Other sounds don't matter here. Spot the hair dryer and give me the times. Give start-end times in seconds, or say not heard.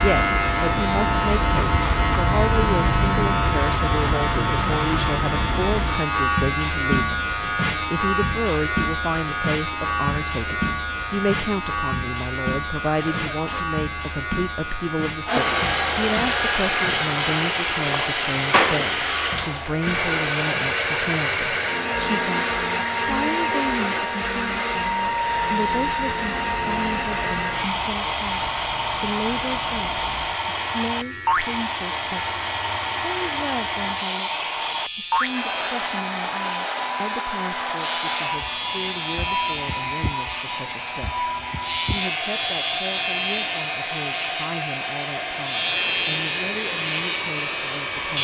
15.2-48.1.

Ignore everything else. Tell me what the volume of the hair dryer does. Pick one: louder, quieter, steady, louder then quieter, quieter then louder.
quieter.